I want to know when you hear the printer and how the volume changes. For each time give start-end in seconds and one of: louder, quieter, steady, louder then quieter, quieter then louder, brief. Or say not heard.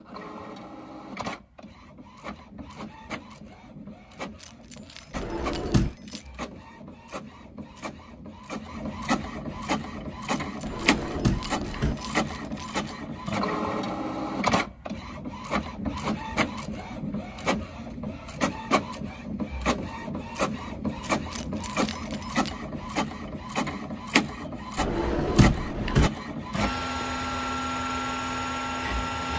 0.0-29.3 louder.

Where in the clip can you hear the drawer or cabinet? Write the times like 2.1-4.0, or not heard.
5.1-6.0, 10.7-11.9, 24.8-26.1.